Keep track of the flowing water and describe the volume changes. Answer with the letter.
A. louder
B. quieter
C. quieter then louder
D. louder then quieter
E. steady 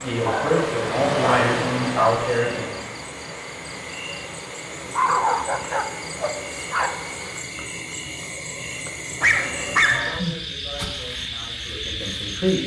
B.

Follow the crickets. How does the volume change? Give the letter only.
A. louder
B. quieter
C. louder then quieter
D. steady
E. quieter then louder
A.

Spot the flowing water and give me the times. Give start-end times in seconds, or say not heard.
0.0-7.4.